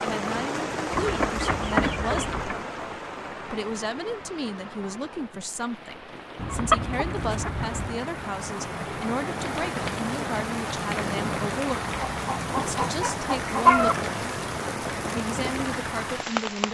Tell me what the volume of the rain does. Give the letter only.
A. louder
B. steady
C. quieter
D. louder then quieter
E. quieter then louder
E.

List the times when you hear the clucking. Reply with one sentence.
You can hear the clucking from 0.9 to 2.6 s, from 6.3 to 8.1 s and from 12.1 to 13.9 s.